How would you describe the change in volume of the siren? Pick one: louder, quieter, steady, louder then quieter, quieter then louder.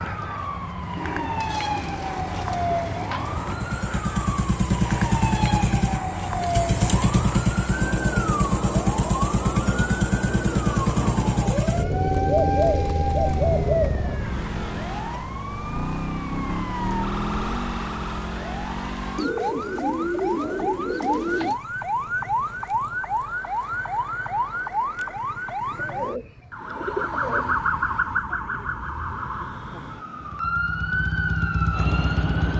steady.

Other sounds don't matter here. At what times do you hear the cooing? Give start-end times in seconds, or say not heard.
0.9-3.6, 12.4-14.0, 19.1-21.6, 25.7-27.6.